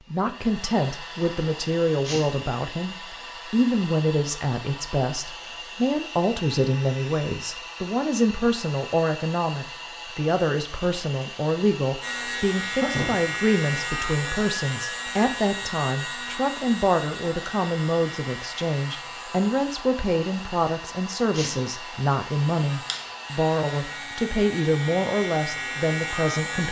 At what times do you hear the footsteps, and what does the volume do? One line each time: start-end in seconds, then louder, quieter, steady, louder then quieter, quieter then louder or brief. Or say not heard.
not heard.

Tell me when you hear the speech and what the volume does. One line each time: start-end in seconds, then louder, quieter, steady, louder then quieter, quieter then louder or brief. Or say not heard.
0.1-26.6 steady.